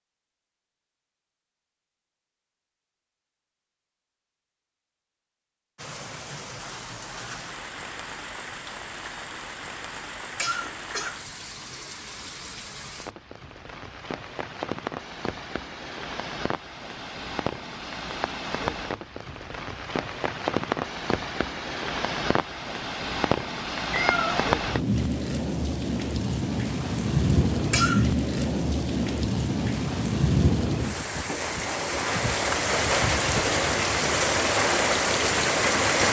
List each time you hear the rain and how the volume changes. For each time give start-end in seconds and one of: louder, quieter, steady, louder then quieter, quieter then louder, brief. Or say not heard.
5.8-36.0 louder.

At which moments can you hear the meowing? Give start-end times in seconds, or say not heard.
23.9-24.5.